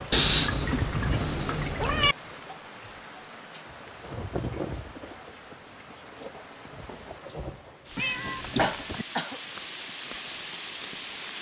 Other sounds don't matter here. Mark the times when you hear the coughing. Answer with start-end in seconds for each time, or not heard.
0.3-0.8, 8.6-9.4.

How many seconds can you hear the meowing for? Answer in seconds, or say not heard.
3 s.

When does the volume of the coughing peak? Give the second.
9 s.